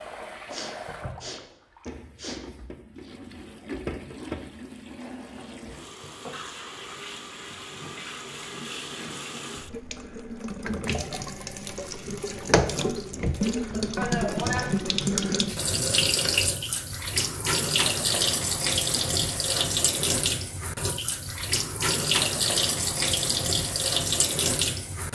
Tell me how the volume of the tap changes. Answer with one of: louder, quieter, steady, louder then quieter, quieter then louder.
louder.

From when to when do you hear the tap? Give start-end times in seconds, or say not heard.
0.0-25.1.